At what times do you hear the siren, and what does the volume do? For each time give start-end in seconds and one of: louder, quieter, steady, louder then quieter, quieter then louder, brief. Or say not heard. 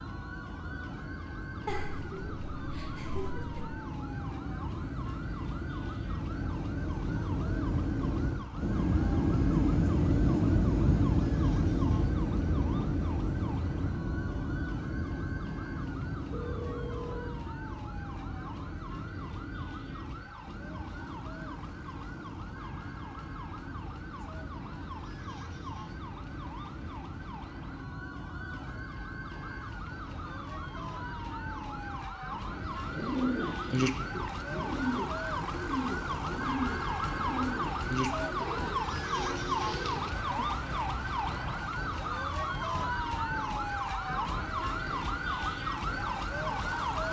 0.0-47.0 louder.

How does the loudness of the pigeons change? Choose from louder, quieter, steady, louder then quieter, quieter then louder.
quieter.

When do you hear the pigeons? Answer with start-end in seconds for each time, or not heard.
32.5-40.6.